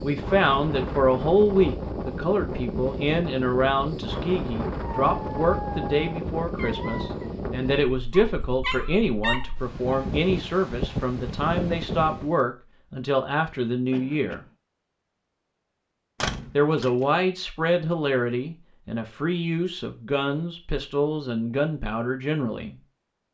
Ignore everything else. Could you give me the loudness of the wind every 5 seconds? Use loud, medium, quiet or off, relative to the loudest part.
loud, loud, loud, off, off.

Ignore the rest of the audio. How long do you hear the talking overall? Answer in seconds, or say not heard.
21 s.